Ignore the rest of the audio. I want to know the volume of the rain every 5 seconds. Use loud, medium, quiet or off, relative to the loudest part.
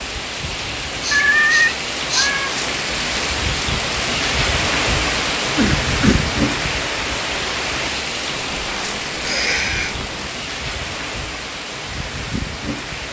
loud, loud, medium.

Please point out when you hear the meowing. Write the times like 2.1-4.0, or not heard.
1.1-2.5, 8.2-10.3.